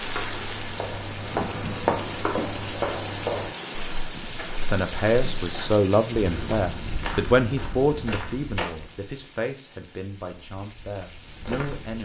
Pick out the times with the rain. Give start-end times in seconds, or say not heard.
0.0-12.0.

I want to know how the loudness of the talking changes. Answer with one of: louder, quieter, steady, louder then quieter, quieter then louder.
quieter.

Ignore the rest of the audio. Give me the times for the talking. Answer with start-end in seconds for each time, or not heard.
4.6-12.0.